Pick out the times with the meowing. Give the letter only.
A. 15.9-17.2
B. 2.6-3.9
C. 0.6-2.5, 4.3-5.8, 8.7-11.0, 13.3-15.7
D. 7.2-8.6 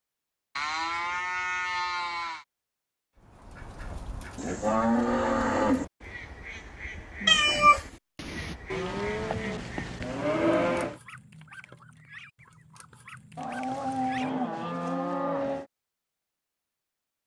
D.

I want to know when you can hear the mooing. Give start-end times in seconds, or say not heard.
0.6-2.5, 4.3-5.8, 8.7-11.0, 13.3-15.7.